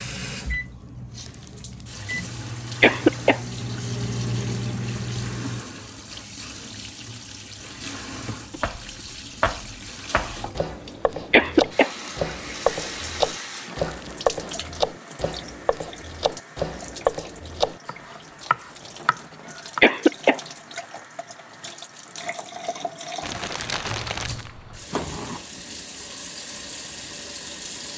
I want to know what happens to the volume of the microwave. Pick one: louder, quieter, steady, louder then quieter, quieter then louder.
louder.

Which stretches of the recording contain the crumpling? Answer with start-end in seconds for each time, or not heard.
1.2-2.0, 13.8-14.3, 23.2-24.5.